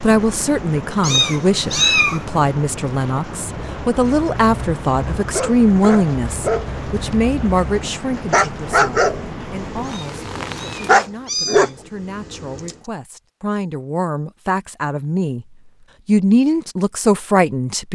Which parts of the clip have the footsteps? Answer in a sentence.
You can't hear the footsteps here.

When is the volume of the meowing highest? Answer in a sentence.
The volume of the meowing peaks at 2 seconds.